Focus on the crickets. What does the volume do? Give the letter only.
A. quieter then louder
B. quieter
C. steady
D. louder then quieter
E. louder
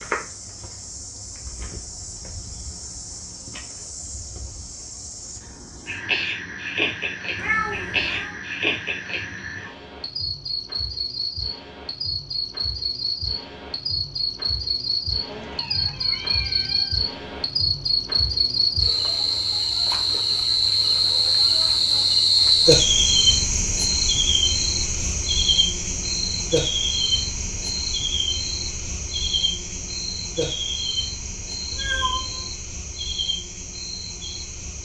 D.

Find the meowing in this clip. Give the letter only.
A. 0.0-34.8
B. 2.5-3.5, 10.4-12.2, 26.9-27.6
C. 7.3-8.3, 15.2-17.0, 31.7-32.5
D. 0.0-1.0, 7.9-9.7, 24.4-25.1
C.